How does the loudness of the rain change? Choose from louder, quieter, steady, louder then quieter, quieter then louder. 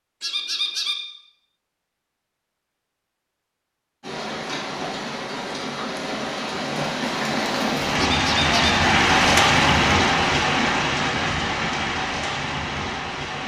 louder then quieter.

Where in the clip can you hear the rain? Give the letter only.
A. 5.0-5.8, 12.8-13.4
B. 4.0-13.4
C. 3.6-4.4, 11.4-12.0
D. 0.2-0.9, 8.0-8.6
B.